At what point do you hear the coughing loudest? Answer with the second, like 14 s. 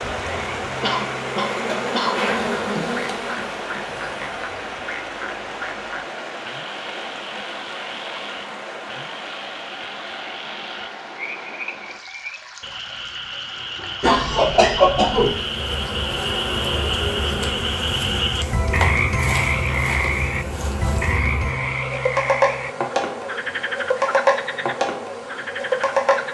15 s.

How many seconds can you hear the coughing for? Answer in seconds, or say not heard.
3 s.